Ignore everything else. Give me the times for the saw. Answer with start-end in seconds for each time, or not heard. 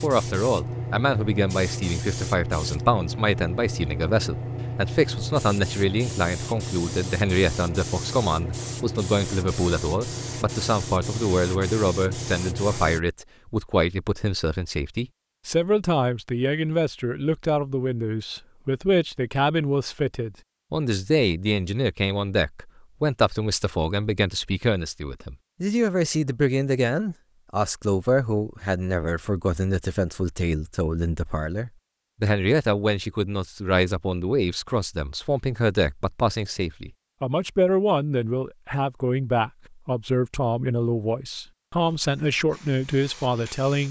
not heard.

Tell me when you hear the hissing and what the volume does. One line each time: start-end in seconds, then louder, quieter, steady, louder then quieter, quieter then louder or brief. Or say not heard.
0.0-13.0 steady
41.9-43.8 brief.